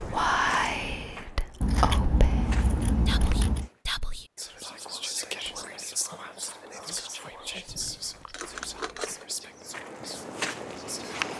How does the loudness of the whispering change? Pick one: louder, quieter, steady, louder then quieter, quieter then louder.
quieter.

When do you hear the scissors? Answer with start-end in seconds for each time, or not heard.
1.6-3.7, 7.7-9.2.